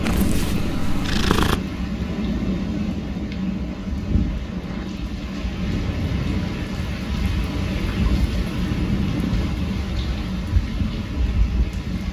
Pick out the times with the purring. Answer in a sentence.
You can hear the purring from 0.0 to 1.6 s.